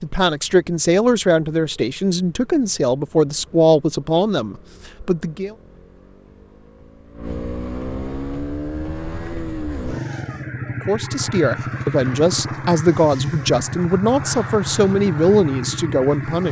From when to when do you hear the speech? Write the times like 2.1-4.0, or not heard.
0.0-5.5, 10.8-16.4.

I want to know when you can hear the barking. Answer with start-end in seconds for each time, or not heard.
not heard.